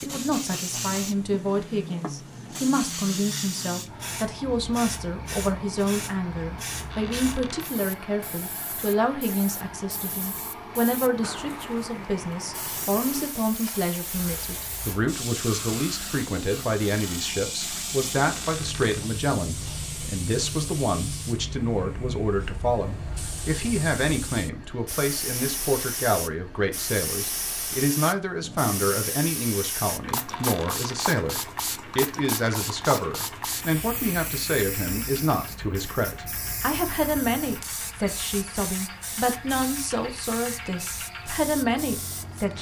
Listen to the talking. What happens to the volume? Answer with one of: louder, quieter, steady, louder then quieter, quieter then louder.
steady.